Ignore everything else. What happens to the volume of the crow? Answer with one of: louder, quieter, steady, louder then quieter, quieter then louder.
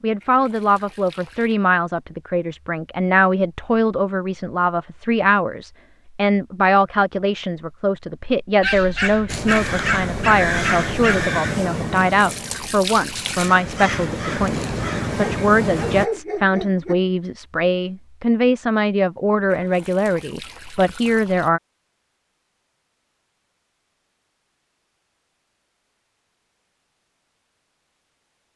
quieter then louder.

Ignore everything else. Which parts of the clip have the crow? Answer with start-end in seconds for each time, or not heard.
9.2-16.1.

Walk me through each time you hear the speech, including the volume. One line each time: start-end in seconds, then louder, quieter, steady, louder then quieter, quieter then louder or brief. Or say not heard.
0.0-21.6 steady.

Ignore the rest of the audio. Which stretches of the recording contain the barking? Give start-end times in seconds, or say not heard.
8.6-11.3, 15.2-16.9.